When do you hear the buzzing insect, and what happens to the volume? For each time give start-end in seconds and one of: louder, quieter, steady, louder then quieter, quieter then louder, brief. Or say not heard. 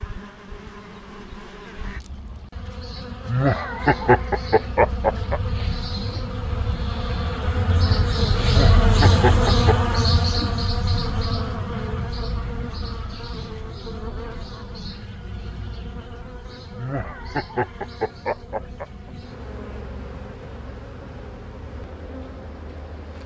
0.0-23.2 louder then quieter.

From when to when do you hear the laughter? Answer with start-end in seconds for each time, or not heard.
3.2-5.4, 8.4-10.0, 16.8-19.1.